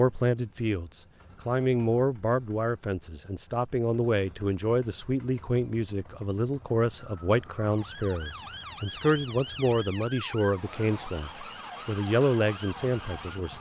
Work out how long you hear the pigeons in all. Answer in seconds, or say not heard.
not heard.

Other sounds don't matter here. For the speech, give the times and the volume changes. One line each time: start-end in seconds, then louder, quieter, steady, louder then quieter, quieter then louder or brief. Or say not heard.
0.0-13.5 steady.